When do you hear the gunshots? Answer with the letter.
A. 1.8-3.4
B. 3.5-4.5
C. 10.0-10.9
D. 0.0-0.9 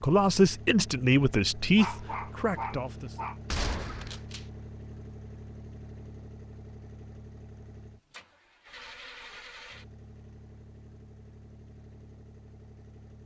B.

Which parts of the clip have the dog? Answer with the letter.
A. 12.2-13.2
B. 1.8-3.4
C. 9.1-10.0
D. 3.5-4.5
B.